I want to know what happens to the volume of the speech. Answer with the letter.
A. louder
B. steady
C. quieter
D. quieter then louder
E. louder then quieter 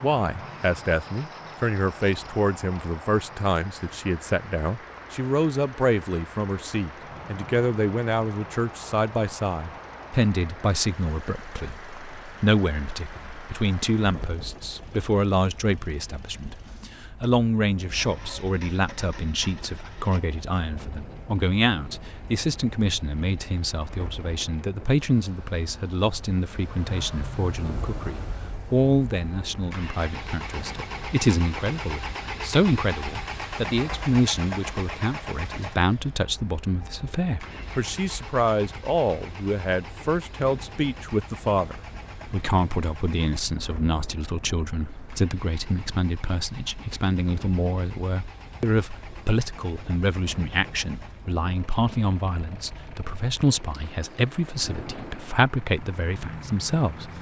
B.